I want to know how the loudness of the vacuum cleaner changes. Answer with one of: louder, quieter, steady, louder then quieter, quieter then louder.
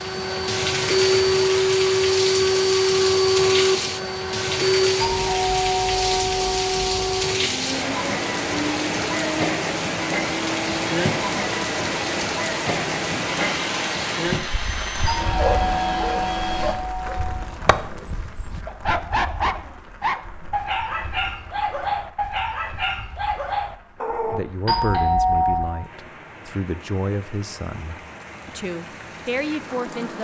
quieter.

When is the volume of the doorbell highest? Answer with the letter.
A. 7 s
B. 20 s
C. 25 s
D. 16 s
C.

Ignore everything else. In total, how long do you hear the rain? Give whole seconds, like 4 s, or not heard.
30 s.